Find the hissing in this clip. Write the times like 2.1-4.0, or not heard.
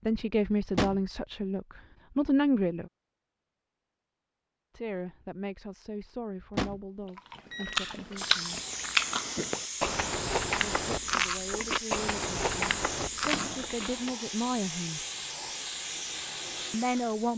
8.2-17.3.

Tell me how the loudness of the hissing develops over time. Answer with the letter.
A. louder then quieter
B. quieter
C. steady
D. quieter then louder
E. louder
C.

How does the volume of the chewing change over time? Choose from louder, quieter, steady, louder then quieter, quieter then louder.
steady.